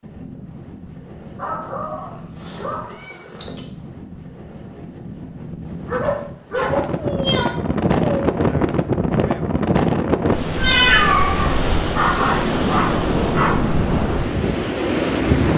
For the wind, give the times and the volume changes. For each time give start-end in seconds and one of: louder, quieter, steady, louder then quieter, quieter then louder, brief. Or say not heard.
0.0-15.5 louder.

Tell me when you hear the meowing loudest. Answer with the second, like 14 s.
11 s.